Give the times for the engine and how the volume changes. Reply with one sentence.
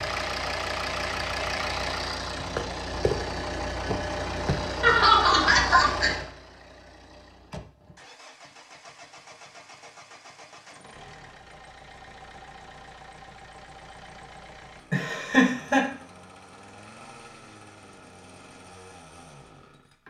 The engine can be heard from 0.0 to 20.0 s, getting quieter.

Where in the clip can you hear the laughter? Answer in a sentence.
The laughter can be heard from 4.8 to 6.1 s and from 14.9 to 15.8 s.